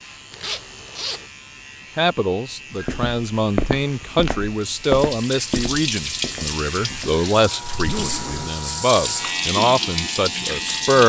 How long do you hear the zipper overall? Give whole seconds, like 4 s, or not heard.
2 s.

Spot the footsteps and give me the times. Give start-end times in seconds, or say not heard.
2.8-7.2.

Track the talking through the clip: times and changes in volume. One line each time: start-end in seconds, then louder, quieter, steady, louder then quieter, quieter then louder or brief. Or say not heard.
1.9-11.0 steady.